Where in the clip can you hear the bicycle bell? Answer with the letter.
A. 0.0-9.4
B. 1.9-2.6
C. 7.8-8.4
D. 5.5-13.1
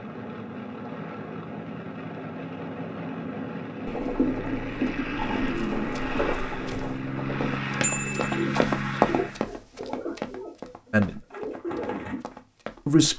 C.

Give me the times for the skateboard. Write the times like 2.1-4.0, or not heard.
not heard.